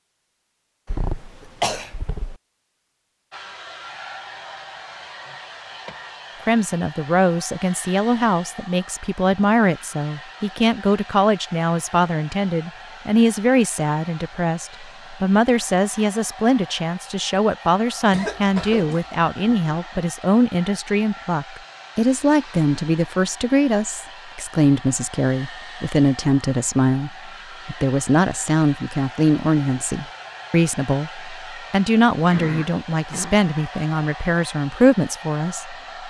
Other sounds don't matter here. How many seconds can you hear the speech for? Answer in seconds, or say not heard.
29 s.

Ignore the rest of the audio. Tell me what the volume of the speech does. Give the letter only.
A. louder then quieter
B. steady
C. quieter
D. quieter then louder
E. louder
B.